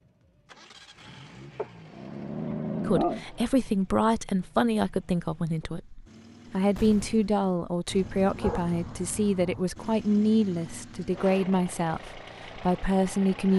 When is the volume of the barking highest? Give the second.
3 s.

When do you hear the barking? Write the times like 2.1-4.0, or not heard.
1.6-3.5, 7.9-9.7.